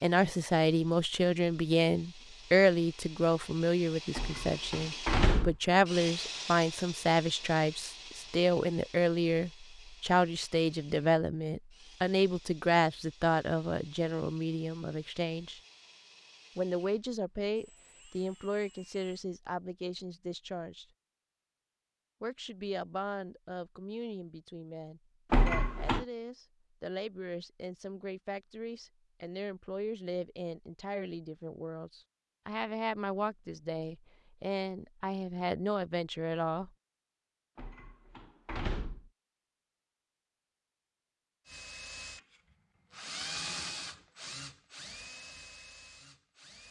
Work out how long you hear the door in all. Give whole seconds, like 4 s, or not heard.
4 s.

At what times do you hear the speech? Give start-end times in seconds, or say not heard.
0.0-15.6, 16.6-20.9, 22.2-36.7.